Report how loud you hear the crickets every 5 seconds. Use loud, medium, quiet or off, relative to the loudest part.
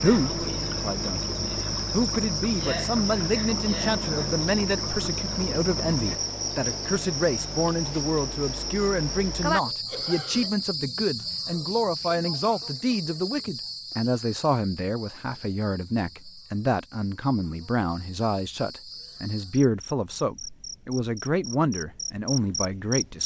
loud, loud, medium, quiet, medium.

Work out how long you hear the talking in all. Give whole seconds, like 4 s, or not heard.
23 s.